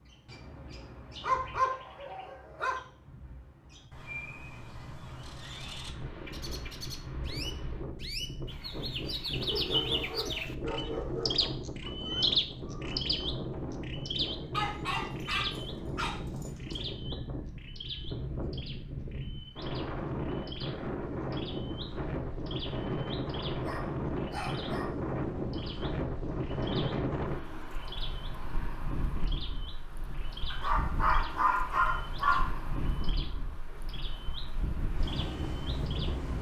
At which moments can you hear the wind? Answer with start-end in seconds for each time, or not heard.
5.8-36.3.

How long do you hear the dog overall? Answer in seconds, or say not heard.
9 s.